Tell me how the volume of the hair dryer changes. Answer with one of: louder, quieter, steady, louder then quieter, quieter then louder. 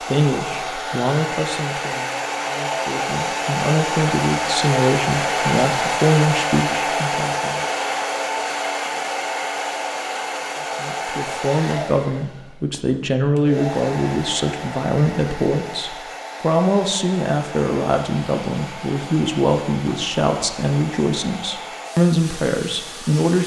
quieter.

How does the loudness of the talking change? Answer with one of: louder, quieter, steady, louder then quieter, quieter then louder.
steady.